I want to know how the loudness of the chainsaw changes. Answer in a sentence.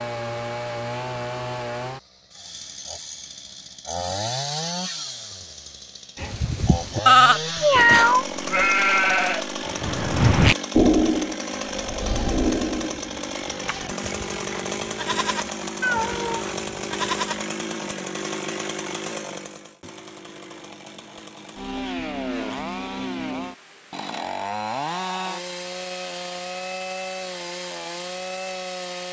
The volume of the chainsaw stays about the same.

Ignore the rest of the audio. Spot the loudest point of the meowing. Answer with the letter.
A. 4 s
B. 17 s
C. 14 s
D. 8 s
D.